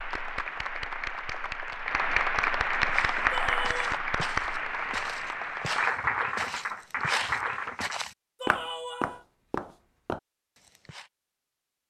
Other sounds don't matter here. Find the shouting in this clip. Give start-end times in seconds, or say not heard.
3.3-4.0, 8.4-9.2.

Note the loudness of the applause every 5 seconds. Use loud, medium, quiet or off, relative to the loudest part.
loud, loud, off.